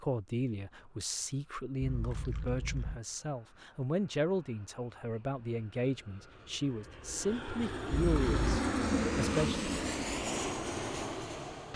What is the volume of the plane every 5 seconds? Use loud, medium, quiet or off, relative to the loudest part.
quiet, loud, loud.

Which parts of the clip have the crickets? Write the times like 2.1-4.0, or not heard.
not heard.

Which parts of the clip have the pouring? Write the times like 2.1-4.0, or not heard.
1.8-3.0, 8.1-8.6.